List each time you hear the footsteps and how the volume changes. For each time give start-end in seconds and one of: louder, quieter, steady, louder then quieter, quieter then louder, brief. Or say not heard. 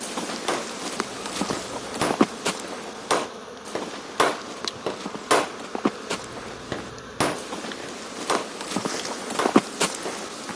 0.0-10.5 quieter then louder.